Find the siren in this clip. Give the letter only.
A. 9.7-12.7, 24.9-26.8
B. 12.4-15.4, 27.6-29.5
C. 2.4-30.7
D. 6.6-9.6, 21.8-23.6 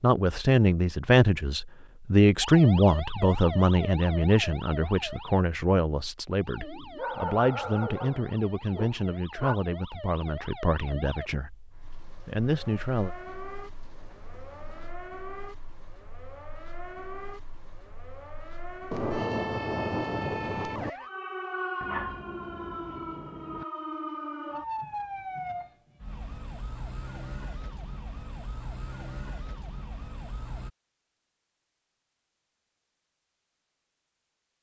C.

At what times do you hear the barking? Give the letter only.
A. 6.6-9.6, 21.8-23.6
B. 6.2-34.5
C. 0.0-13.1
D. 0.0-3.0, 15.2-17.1
A.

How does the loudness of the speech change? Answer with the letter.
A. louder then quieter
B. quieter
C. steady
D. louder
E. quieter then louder
B.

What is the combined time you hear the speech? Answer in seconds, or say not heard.
13 s.